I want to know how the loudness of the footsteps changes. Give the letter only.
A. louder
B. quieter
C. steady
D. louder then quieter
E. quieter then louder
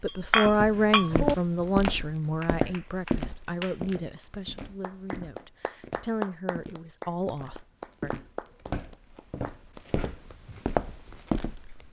E.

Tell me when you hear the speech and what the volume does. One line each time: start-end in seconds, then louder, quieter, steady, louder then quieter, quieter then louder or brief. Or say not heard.
0.0-8.1 quieter.